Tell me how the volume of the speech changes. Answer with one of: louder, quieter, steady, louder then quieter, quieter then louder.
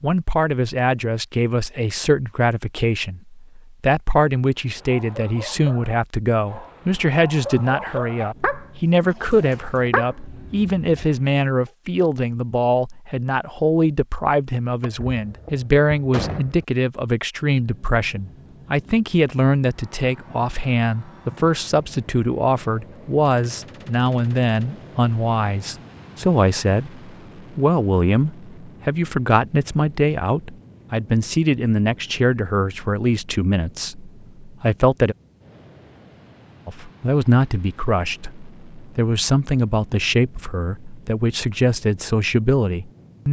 steady.